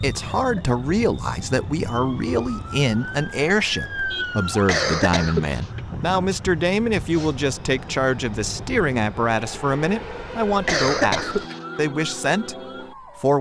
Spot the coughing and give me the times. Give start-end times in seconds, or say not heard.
0.2-0.8, 4.7-5.6, 10.7-11.6.